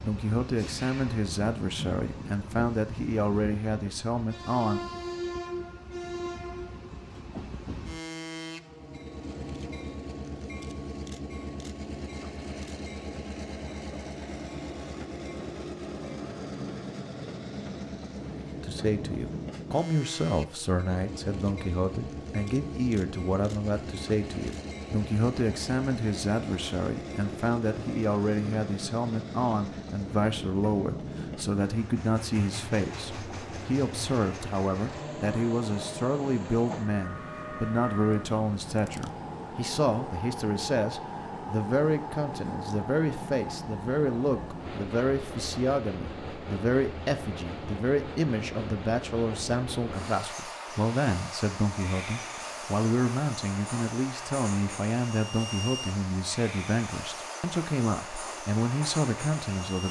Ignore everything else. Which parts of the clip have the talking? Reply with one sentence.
You can hear the talking from 0.0 to 4.8 s and from 18.6 to 59.8 s.